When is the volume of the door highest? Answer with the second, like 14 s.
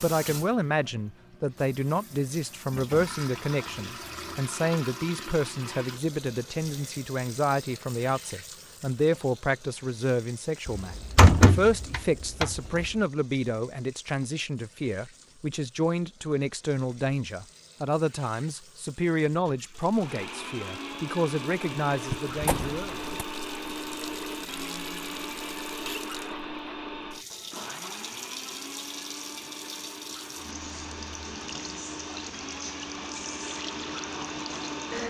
11 s.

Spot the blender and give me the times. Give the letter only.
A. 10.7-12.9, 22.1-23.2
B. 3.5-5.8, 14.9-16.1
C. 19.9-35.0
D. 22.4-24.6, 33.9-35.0
C.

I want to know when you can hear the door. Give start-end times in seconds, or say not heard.
10.7-12.9, 22.1-23.2.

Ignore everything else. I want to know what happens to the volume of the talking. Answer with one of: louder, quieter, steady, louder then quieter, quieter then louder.
steady.